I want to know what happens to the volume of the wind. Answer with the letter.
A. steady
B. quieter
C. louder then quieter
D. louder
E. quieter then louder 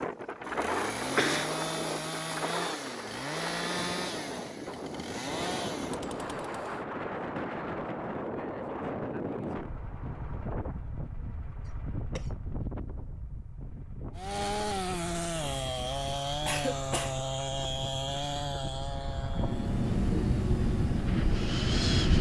E.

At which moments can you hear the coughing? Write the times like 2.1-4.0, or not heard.
1.1-1.6, 11.7-12.3, 16.4-17.2.